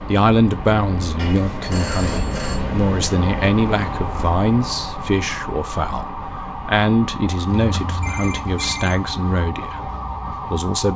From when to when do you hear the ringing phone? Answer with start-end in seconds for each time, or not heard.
1.1-2.6, 7.5-9.4.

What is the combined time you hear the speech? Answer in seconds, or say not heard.
11 s.